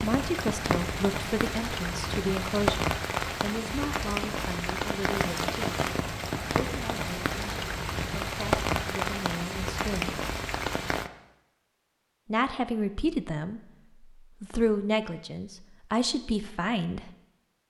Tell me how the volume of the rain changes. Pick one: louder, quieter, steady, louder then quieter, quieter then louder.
steady.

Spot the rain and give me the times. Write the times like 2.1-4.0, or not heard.
0.0-11.1.